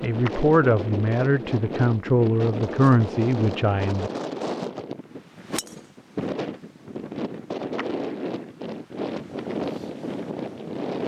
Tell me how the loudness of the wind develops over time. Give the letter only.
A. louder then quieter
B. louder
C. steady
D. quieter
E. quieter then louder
C.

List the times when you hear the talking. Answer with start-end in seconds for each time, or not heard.
0.0-4.1.